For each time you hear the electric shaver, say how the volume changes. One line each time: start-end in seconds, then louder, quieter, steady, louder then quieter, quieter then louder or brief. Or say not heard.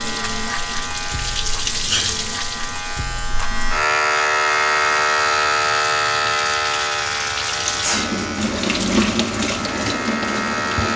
0.0-10.9 louder then quieter.